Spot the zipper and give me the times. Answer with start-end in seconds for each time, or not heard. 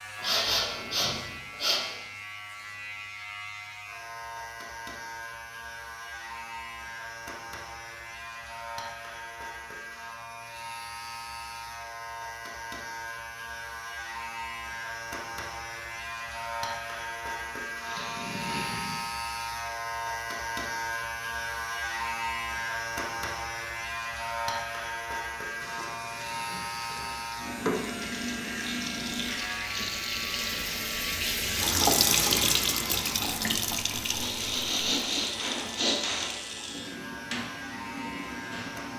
not heard.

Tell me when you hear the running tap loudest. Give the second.
32 s.